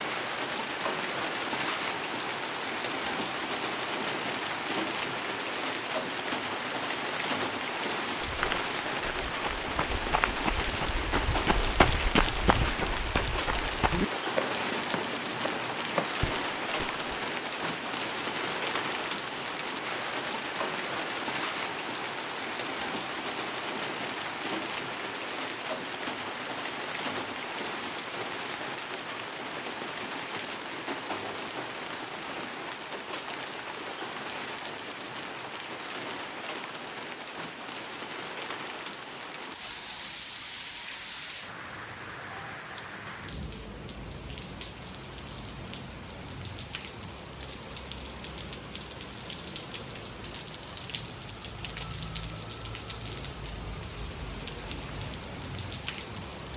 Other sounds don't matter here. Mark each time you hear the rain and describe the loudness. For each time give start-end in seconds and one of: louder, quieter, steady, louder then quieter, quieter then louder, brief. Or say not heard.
0.0-56.5 quieter.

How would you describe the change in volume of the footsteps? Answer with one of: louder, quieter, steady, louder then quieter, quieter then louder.
louder then quieter.